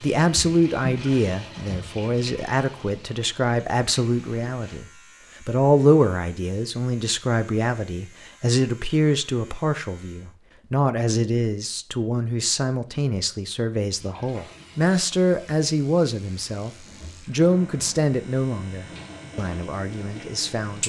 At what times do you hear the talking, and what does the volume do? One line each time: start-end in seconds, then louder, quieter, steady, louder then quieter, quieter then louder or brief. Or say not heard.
0.0-20.8 steady.